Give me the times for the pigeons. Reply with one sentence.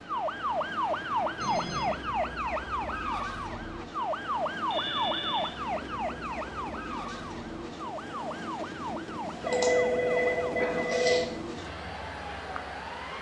You can't hear the pigeons here.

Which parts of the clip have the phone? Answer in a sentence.
You can hear the phone from 1.4 to 2.0 s, from 4.7 to 5.5 s and from 9.4 to 11.2 s.